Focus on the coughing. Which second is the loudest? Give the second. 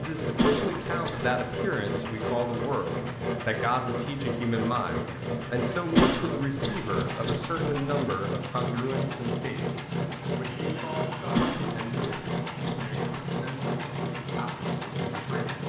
6 s.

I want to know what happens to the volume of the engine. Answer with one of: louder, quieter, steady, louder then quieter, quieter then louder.
steady.